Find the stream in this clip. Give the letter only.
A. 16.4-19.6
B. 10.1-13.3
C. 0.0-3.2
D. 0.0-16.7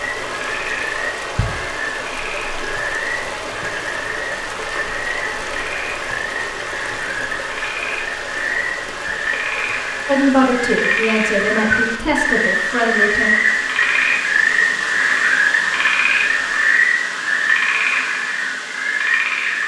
D.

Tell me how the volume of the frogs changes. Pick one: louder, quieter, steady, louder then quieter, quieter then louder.
louder.